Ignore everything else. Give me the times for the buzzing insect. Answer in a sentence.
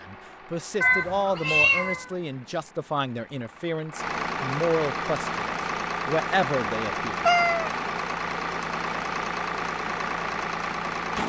You can't hear the buzzing insect here.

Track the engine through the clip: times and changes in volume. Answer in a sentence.
You can hear the engine from 0.0 to 11.2 s, getting louder.